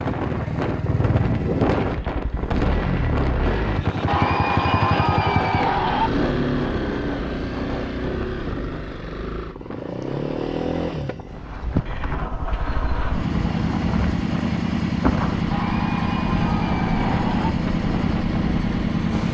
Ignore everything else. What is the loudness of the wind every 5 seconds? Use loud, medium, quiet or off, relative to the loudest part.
loud, loud, medium, loud.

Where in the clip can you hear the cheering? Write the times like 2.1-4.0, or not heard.
4.0-6.1, 15.5-17.5.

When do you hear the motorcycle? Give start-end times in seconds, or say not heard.
0.0-19.3.